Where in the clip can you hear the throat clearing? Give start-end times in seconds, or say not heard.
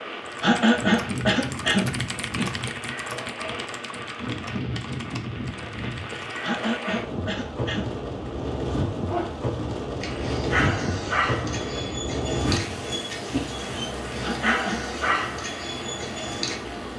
0.4-2.5, 6.4-8.0, 14.2-14.8.